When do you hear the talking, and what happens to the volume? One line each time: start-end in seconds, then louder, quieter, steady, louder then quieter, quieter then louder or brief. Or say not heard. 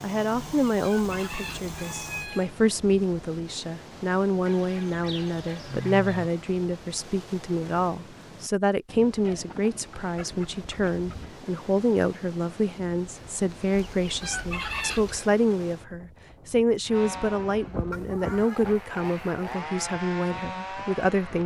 0.0-21.4 steady.